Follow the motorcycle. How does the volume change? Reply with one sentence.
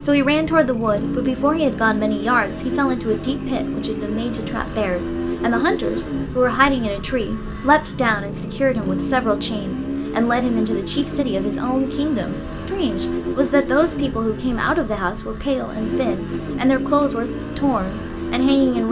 The volume of the motorcycle stays about the same.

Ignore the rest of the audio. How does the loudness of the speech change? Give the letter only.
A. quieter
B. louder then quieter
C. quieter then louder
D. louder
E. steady
E.